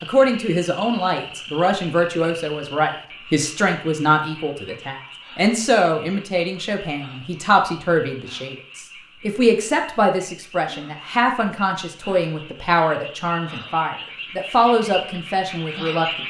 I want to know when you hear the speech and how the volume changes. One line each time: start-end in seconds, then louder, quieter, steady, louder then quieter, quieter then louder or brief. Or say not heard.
0.0-16.2 steady.